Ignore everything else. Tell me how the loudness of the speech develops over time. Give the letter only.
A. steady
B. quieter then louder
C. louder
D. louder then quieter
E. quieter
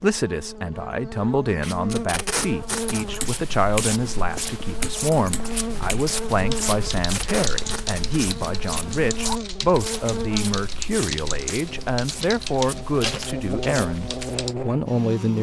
A.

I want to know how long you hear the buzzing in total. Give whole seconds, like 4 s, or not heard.
15 s.